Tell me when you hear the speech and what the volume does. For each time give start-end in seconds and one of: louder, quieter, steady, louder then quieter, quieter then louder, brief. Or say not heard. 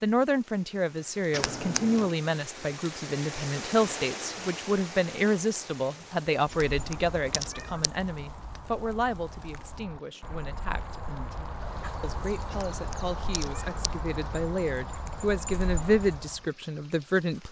0.0-17.4 quieter then louder.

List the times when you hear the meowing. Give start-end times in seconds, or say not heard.
1.3-2.1, 6.5-7.9, 12.5-13.9.